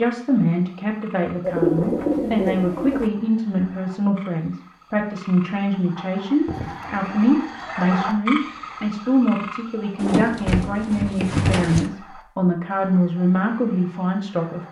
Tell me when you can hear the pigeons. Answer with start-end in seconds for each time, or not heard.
1.4-3.1, 6.5-8.1, 10.0-11.9.